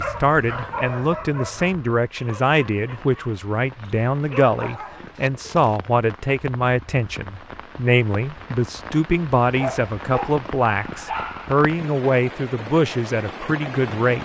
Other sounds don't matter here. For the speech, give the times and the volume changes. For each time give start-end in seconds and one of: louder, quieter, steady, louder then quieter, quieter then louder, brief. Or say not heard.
0.0-14.2 steady.